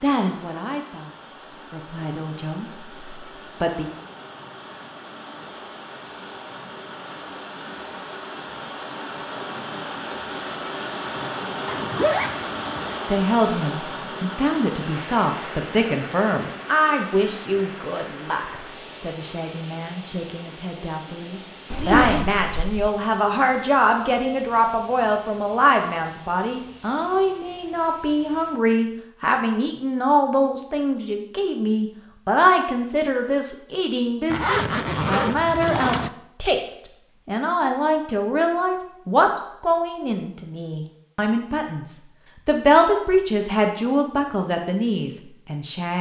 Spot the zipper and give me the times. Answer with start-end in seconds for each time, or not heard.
11.7-13.1, 21.7-22.9, 34.3-36.1.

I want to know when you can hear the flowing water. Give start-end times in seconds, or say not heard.
0.0-28.6.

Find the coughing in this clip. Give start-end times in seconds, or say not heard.
not heard.